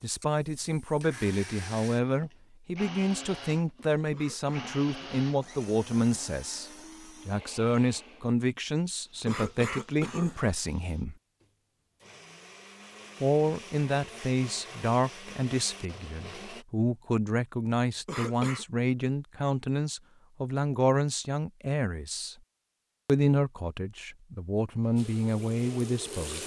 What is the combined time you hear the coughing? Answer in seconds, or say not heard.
3 s.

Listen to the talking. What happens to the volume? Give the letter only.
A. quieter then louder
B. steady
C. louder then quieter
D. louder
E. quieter
B.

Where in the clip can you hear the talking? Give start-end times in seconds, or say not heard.
0.0-11.2, 13.2-22.4, 23.1-26.4.